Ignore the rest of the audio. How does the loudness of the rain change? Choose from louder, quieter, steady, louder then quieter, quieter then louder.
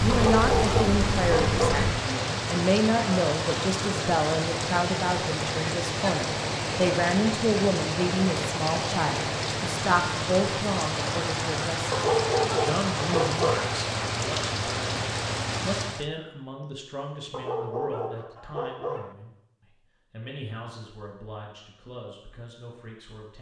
steady.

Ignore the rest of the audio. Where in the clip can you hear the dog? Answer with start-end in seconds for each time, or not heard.
0.1-1.9, 11.9-13.7, 17.3-19.1.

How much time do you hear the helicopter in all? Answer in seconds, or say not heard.
2 s.